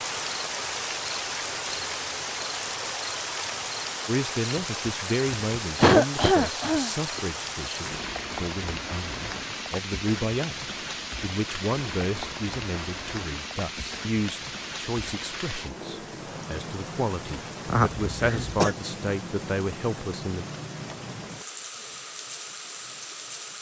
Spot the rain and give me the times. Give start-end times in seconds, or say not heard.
0.0-23.5.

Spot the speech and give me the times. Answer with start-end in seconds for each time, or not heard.
4.0-20.4.